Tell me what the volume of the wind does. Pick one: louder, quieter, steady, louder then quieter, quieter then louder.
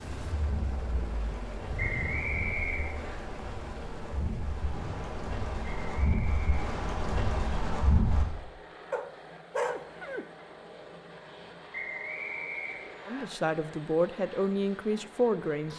louder.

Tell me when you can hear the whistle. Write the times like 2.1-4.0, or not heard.
1.8-3.2, 5.7-6.6, 11.7-13.2.